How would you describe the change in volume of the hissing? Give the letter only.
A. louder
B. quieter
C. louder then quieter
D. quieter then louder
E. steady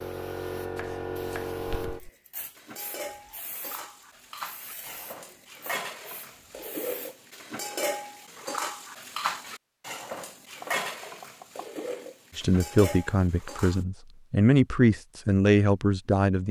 B.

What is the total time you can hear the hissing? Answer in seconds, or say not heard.
7 s.